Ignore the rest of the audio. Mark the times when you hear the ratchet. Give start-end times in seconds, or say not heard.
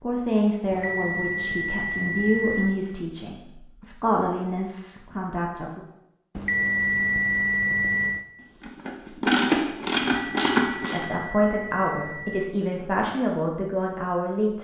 8.6-11.1.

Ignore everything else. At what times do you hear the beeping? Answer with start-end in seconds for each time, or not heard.
0.7-2.8, 6.3-8.2, 10.2-12.6.